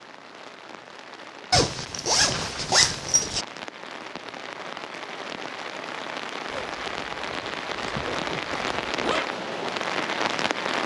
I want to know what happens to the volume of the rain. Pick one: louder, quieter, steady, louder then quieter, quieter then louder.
louder.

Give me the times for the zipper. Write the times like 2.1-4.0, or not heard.
1.5-3.5, 6.5-9.2.